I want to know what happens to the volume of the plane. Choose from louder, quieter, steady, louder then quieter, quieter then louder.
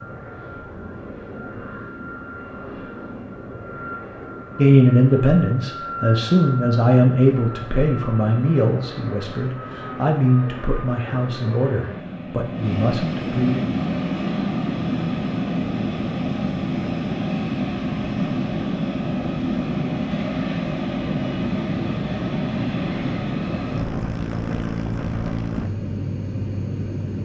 louder.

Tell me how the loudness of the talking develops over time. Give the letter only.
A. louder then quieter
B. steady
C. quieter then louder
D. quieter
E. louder
D.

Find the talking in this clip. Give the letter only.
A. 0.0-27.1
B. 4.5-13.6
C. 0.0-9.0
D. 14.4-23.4
B.